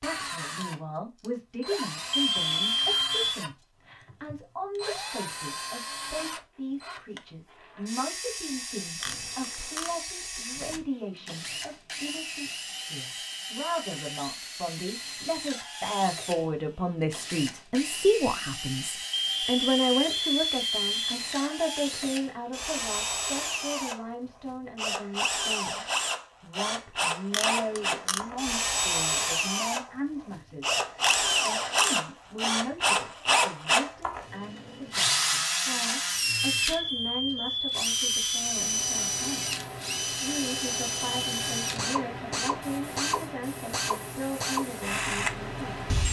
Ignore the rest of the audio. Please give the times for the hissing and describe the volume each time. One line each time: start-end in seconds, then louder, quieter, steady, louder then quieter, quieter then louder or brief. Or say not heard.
38.5-46.0 steady.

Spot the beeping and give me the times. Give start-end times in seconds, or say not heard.
2.2-3.4, 19.1-21.1, 36.6-38.4.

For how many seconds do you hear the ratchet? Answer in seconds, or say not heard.
3 s.